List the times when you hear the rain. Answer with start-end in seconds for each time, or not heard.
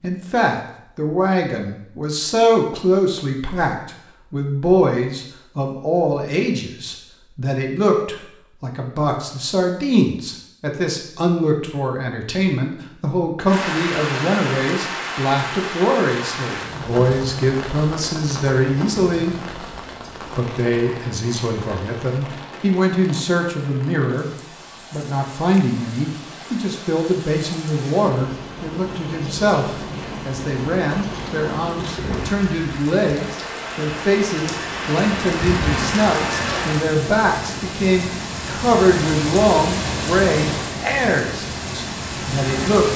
13.4-42.9.